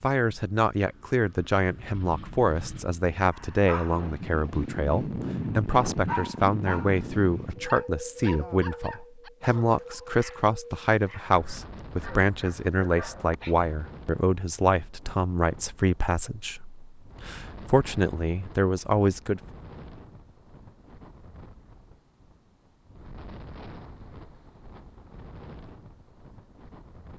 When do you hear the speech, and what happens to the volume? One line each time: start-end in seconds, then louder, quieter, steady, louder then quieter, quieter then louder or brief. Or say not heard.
0.0-19.4 steady.